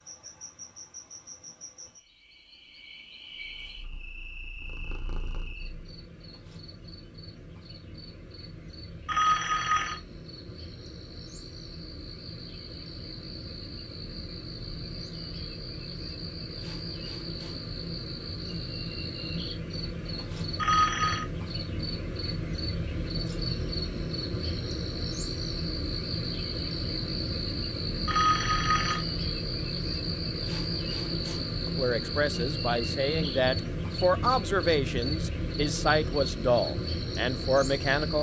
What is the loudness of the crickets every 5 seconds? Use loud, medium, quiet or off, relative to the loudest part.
quiet, quiet, medium, medium, loud, loud, loud, loud.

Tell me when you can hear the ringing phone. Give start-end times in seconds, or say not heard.
9.1-10.0, 20.6-21.2, 28.1-29.1.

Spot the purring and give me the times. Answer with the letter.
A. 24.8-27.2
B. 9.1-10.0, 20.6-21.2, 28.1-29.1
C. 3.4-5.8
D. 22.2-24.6
C.